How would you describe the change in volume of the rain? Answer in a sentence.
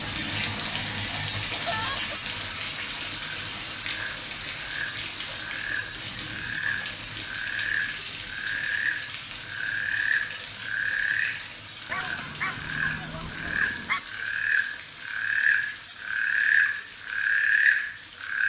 The loudness of the rain goes down.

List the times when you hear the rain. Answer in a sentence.
You can hear the rain from 0.0 to 18.4 s.